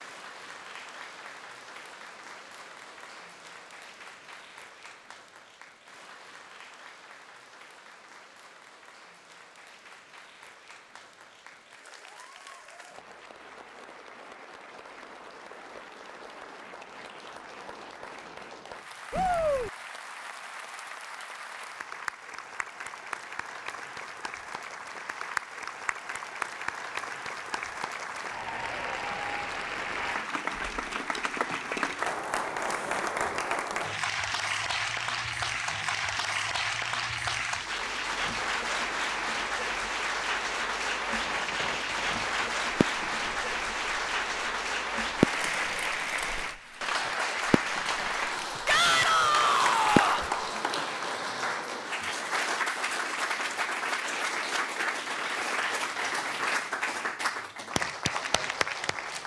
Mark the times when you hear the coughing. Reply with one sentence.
You can't hear the coughing here.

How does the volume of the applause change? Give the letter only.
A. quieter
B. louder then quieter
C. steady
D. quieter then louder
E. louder
E.